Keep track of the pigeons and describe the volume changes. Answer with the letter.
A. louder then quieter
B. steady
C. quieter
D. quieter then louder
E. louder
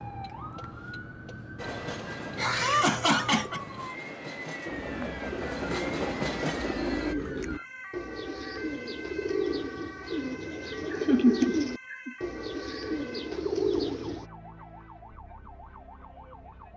E.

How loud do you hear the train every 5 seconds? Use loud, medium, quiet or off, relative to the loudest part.
medium, loud, off, off.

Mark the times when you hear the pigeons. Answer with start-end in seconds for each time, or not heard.
4.7-14.2.